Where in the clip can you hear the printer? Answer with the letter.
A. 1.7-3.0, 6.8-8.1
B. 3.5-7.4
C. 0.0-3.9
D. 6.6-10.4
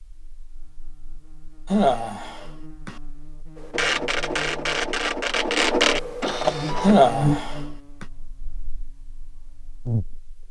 B.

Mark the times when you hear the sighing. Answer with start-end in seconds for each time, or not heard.
1.7-3.0, 6.8-8.1.